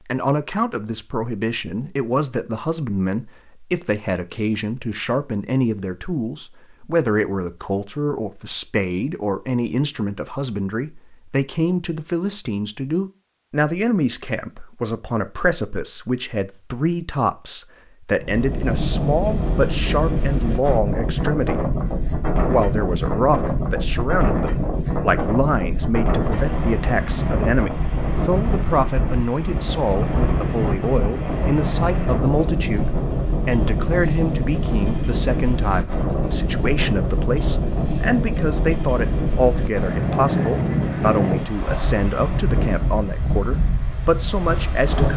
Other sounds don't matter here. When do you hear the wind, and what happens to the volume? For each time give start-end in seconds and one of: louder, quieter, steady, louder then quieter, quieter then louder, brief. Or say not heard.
18.1-45.1 steady.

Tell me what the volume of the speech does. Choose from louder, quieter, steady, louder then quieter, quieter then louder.
steady.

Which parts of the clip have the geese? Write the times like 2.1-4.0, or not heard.
not heard.